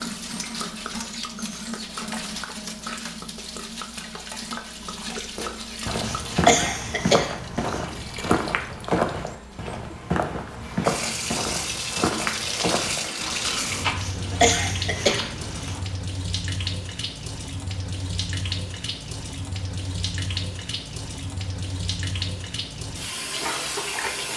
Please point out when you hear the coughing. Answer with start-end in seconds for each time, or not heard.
6.0-7.8, 13.9-15.8.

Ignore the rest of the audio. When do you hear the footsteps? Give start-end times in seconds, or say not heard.
5.3-15.9.